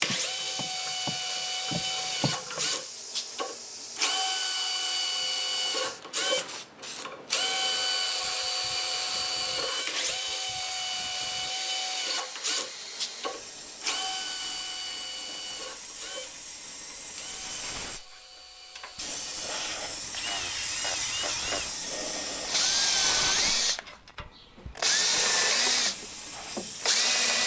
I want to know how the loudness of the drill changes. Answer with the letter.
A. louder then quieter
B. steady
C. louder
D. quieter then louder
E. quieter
D.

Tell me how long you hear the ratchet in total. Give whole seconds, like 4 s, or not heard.
3 s.